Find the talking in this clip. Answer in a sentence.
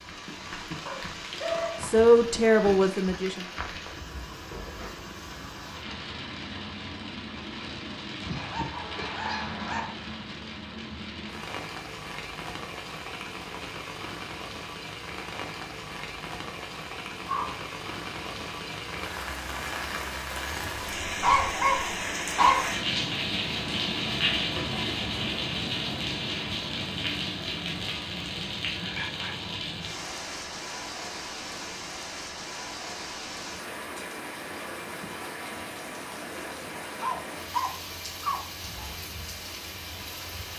The talking can be heard from 1.8 to 3.5 s.